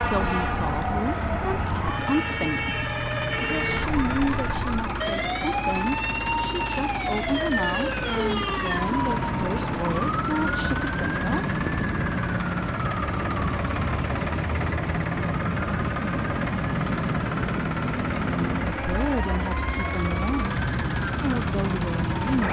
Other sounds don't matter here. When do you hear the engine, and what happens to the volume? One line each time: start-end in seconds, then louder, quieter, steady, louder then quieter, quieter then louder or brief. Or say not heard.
0.0-22.4 steady.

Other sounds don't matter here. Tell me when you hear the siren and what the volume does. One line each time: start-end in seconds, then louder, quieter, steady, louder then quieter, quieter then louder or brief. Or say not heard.
0.0-22.4 steady.